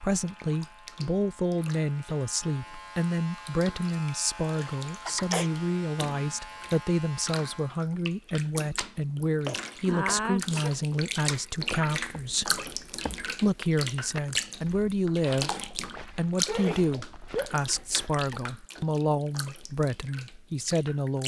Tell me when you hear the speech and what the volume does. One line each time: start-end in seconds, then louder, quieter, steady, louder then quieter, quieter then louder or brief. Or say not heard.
0.0-21.2 steady.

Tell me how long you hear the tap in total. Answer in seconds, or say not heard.
21 s.